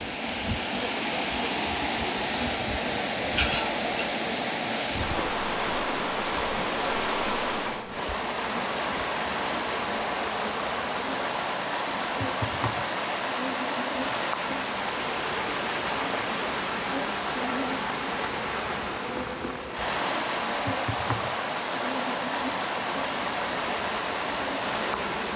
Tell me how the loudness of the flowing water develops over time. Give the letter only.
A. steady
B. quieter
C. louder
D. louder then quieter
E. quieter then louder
A.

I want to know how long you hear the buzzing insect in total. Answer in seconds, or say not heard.
25 s.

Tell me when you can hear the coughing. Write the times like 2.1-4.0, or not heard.
3.4-4.0.